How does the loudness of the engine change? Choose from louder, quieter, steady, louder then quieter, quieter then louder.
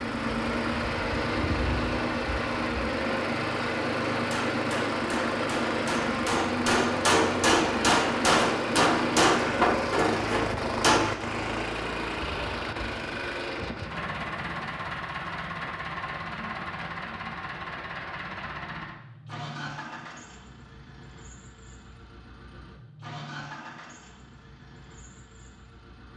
quieter.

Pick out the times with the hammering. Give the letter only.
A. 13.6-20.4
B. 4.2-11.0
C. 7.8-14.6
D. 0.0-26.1
B.